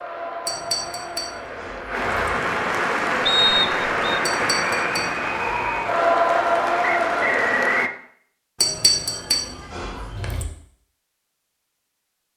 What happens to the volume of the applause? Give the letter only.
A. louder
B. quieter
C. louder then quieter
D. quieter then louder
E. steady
A.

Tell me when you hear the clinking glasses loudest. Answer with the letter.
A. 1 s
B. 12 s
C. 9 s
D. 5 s
C.